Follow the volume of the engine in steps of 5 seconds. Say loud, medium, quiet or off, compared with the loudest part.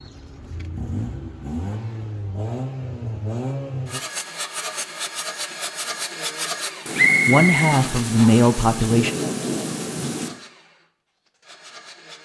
loud, loud, quiet.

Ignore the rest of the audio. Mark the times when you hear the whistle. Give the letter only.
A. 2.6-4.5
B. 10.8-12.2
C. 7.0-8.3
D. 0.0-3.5
C.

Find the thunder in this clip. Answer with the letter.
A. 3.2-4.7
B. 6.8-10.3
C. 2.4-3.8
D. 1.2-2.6
B.